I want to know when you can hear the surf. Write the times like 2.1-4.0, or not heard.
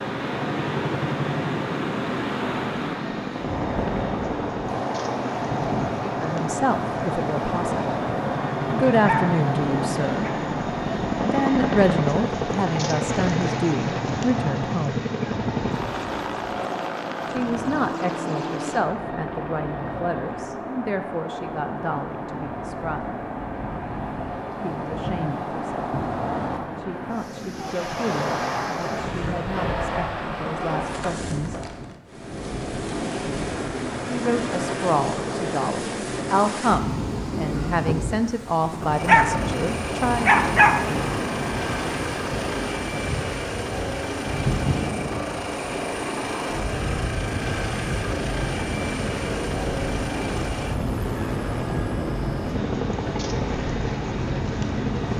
0.0-55.1.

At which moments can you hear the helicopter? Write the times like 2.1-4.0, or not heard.
0.0-20.6, 38.5-55.1.